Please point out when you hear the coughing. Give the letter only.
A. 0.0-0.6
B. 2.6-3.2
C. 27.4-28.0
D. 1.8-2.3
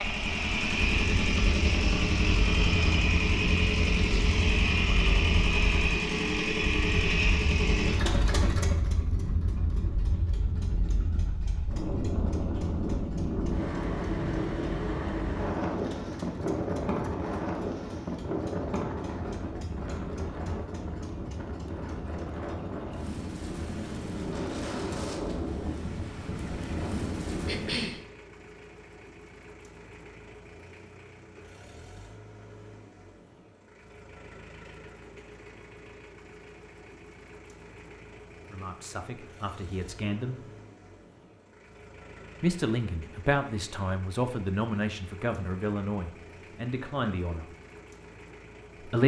C.